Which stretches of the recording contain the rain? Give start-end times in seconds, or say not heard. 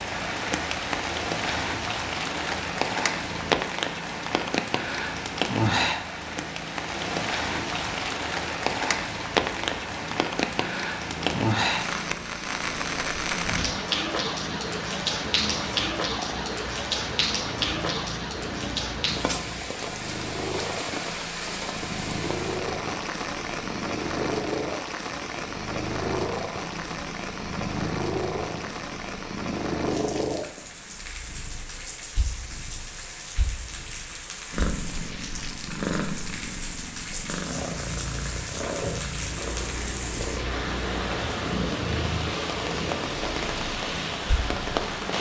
0.0-45.1.